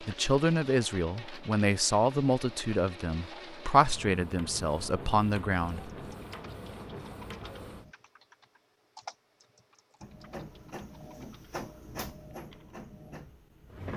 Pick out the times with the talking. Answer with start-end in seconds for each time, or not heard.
0.0-5.9.